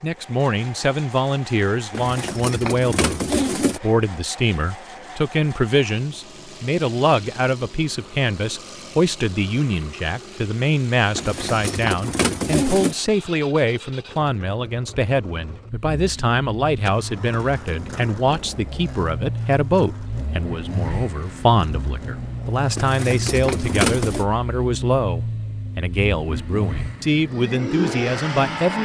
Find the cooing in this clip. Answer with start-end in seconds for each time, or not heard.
1.9-3.8, 11.2-12.9, 22.8-24.2.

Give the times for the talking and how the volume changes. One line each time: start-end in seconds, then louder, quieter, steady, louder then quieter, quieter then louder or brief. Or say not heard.
0.0-28.8 steady.